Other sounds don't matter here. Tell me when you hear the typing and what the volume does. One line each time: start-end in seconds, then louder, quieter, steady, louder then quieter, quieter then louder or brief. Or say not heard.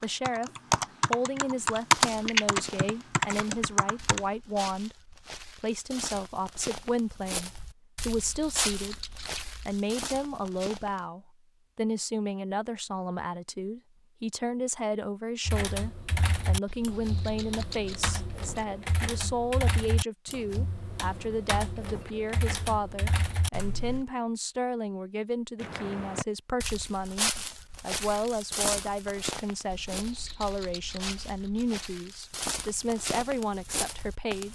0.0-4.2 louder then quieter
15.4-24.1 steady.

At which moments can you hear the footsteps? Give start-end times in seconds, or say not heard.
1.6-11.1, 25.6-34.4.